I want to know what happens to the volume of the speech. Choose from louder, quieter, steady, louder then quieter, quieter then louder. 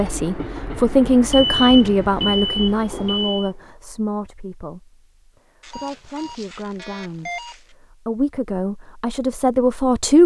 quieter then louder.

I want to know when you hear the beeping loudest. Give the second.
2 s.